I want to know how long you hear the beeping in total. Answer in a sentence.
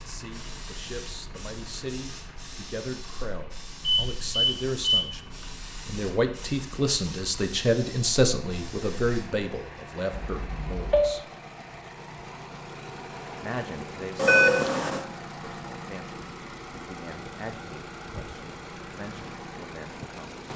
The beeping can be heard for 3 seconds in total.